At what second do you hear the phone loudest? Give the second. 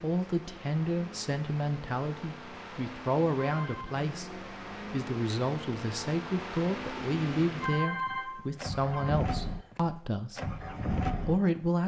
8 s.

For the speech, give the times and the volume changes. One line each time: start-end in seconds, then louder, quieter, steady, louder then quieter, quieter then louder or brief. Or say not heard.
0.0-10.6 steady
11.2-11.8 brief.